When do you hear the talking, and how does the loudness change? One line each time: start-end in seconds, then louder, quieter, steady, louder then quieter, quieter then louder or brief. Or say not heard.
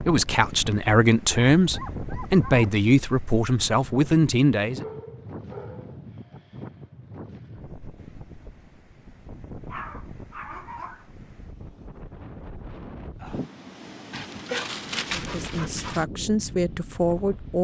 0.1-4.8 steady
15.2-17.5 brief.